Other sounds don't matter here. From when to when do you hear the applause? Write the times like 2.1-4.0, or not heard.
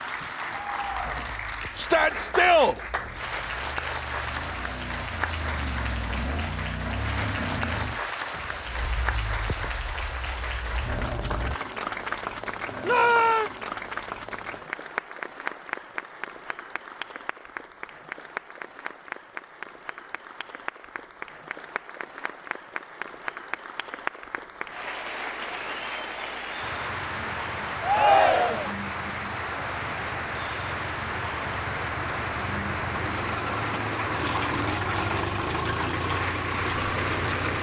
0.0-37.5.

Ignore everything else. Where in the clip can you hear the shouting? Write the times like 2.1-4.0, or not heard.
1.8-2.8, 12.8-13.5, 27.8-28.8.